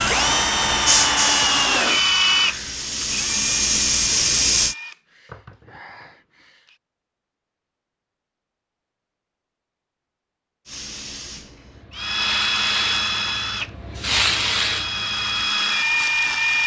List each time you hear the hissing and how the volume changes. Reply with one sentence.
The hissing can be heard from 0.0 to 4.8 s, getting quieter then louder; and from 10.7 to 16.6 s, getting louder then quieter.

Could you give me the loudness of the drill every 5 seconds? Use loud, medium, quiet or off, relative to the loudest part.
loud, quiet, loud, loud.